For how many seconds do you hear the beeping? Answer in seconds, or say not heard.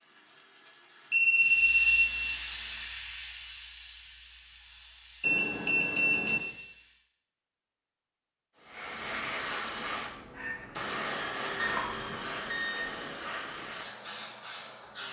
4 s.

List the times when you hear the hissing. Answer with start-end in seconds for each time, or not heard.
1.4-7.0, 8.6-15.0.